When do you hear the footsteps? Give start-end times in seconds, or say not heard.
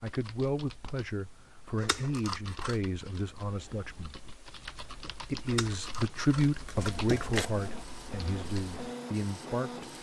not heard.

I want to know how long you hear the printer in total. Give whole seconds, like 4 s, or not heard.
3 s.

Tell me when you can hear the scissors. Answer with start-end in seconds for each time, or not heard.
1.8-2.8, 5.5-7.5.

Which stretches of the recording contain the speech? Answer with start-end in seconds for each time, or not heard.
0.0-4.2, 5.1-9.9.